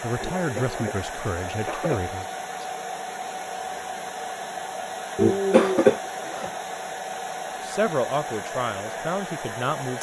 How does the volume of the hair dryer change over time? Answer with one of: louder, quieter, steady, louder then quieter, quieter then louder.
steady.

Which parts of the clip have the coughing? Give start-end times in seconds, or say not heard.
0.2-2.1, 5.2-6.5.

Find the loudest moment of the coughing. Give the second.
6 s.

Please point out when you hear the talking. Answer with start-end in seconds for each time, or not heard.
0.0-2.2, 7.6-9.9.